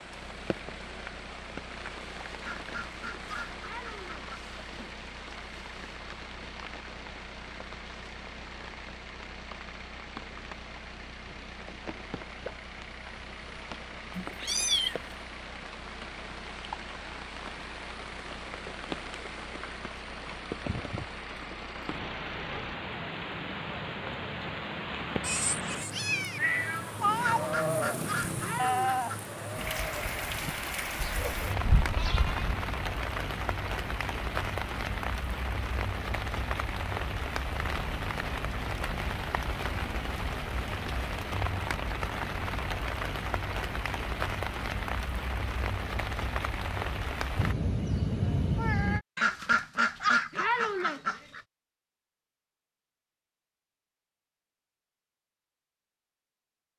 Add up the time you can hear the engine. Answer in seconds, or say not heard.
23 s.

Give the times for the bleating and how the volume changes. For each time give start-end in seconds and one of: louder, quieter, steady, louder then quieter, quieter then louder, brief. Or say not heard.
27.2-32.6 quieter then louder.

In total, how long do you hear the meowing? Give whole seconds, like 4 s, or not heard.
5 s.